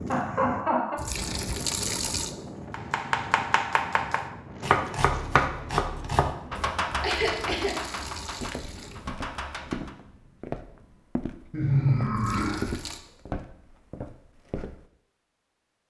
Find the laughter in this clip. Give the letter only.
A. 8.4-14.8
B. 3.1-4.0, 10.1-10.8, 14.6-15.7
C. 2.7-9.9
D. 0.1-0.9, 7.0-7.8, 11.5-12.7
D.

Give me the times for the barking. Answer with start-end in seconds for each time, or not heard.
not heard.